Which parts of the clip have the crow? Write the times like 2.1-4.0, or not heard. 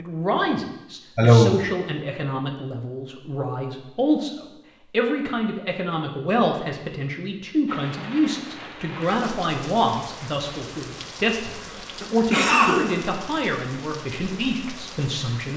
not heard.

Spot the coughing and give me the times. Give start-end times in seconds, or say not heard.
1.1-1.6, 11.6-13.1.